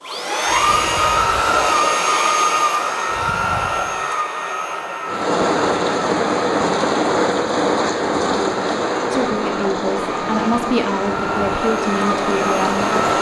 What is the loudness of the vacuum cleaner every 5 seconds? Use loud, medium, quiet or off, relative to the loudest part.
loud, medium, medium.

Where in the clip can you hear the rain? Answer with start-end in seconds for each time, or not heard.
5.0-13.1.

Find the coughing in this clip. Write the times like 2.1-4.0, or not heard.
not heard.